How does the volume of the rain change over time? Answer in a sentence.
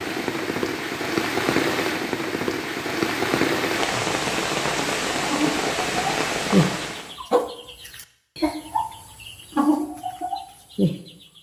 The volume of the rain stays about the same.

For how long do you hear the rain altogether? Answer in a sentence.
The rain can be heard for 7 seconds in total.